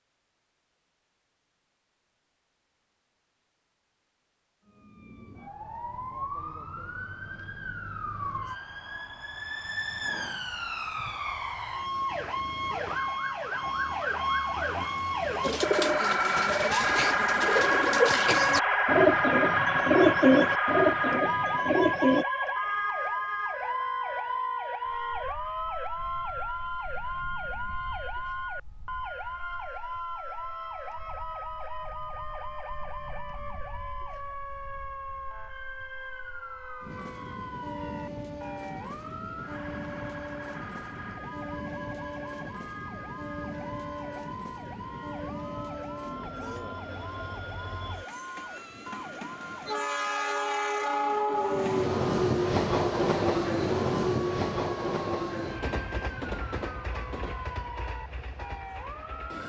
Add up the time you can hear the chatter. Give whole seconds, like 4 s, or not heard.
not heard.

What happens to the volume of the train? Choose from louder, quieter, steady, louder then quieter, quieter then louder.
louder.